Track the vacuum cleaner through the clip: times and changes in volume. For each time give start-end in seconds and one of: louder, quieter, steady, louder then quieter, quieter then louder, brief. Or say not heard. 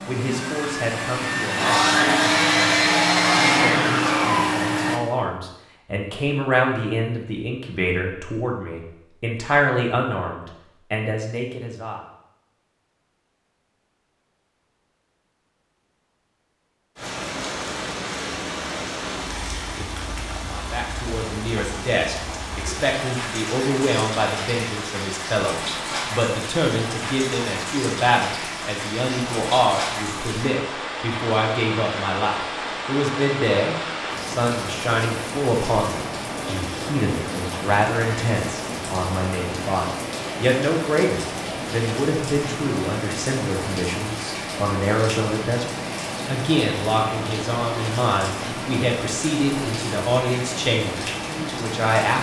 0.0-5.0 louder.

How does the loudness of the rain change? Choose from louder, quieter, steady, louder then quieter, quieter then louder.
steady.